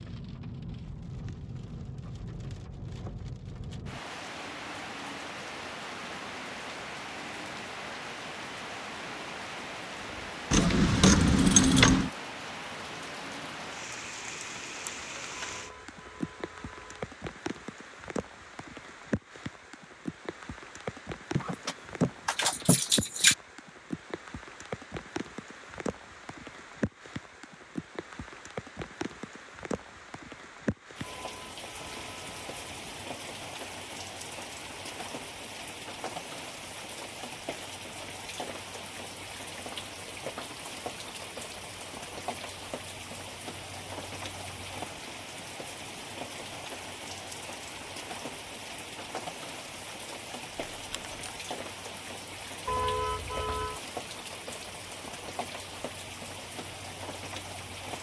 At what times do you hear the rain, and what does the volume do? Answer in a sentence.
You can hear the rain from 0.0 to 57.9 s, at a steady volume.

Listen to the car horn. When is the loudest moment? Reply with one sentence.
The loudest moment of the car horn is at 53 seconds.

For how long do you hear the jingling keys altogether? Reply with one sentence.
The jingling keys can be heard for 4 seconds in total.